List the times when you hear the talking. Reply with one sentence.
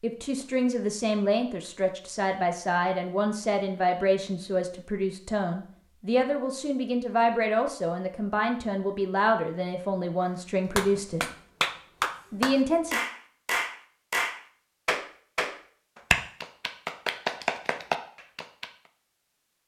You can hear the talking from 0.0 to 11.3 s and from 12.3 to 13.0 s.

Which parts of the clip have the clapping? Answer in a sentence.
You can hear the clapping from 10.7 to 18.7 s.